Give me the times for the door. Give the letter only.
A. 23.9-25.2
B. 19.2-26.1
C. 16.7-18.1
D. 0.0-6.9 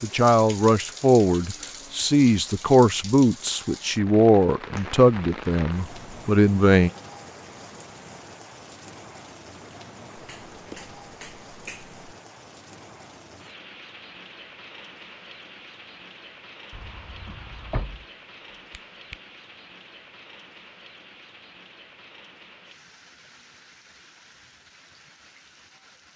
C.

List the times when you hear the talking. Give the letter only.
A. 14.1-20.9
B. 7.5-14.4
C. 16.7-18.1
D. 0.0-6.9
D.